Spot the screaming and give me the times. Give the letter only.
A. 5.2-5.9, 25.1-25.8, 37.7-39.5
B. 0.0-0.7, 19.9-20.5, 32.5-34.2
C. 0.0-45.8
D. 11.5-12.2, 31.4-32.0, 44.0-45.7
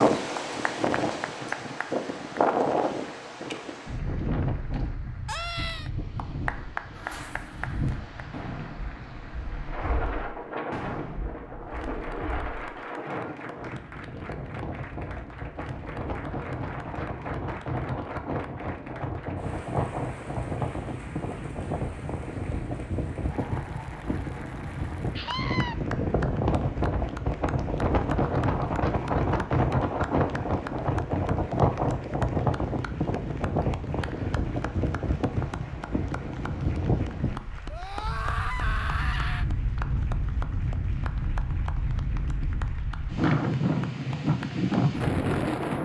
A.